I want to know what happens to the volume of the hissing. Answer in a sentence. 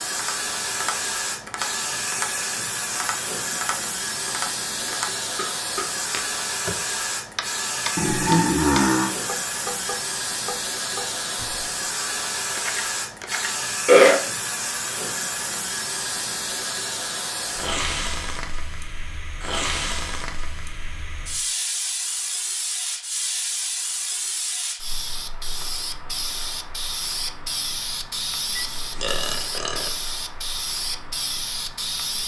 The volume of the hissing stays about the same.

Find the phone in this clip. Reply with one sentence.
The phone can't be heard in this clip.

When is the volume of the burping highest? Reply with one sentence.
The volume of the burping peaks at 14 seconds.